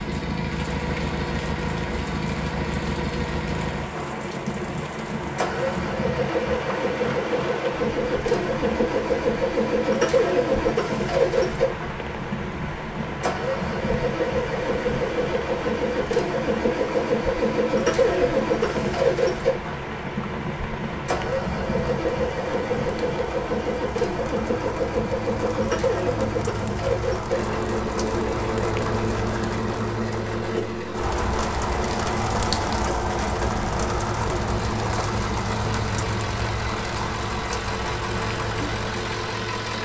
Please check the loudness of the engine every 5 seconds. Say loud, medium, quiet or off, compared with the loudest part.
medium, loud, loud, loud, loud, loud, medium, medium.